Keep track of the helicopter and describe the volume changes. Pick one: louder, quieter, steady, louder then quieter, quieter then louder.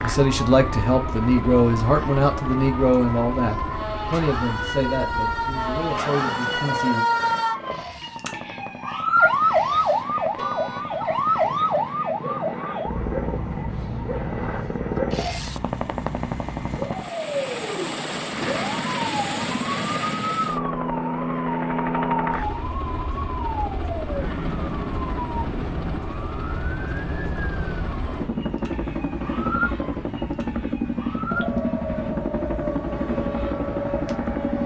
louder.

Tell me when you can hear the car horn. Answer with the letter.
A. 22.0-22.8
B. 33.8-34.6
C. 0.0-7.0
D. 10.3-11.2
D.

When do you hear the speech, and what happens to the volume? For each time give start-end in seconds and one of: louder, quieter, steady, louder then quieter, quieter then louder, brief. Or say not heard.
0.0-7.0 quieter.